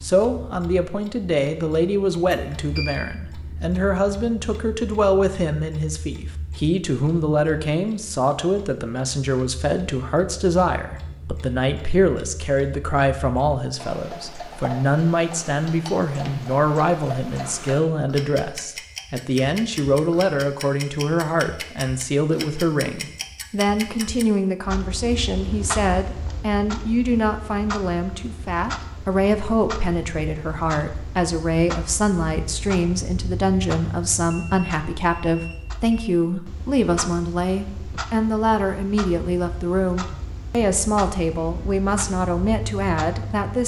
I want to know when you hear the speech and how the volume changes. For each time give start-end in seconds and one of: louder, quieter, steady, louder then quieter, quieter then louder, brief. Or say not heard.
0.0-43.6 steady.